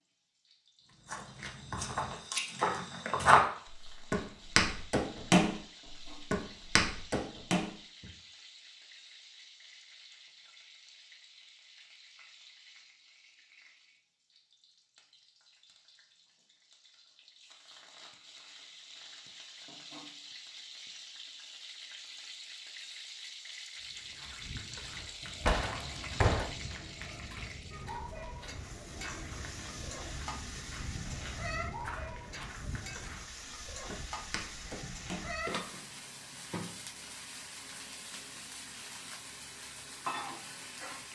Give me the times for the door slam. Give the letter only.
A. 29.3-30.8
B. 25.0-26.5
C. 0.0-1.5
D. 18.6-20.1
B.